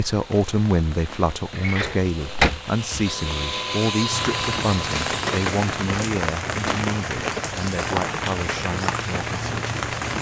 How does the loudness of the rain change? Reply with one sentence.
The loudness of the rain goes up.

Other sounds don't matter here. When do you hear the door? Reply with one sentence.
The door can be heard from 1.6 to 2.5 s.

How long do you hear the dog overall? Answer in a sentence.
You can't hear the dog here.